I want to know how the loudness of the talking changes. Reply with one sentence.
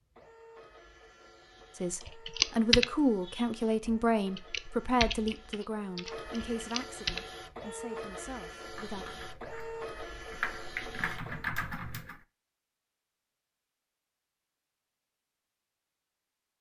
The volume of the talking goes down.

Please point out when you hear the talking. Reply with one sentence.
You can hear the talking from 1.8 to 9.2 s.